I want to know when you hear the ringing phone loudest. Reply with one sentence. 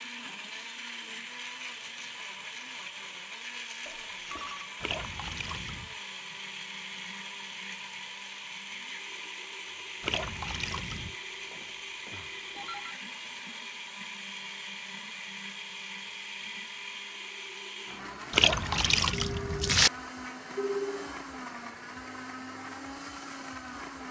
The loudest moment of the ringing phone is at 21 seconds.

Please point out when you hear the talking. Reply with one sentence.
The talking can't be heard in this clip.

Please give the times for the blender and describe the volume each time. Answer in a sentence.
You can hear the blender from 0.0 to 24.0 s, at a steady volume.